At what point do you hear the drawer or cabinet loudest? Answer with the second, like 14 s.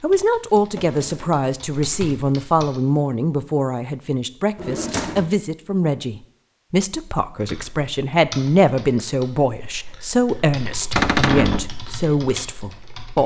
11 s.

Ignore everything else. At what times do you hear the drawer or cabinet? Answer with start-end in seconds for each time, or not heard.
0.6-1.4, 4.5-5.3, 10.9-11.7.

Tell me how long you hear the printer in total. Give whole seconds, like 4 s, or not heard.
not heard.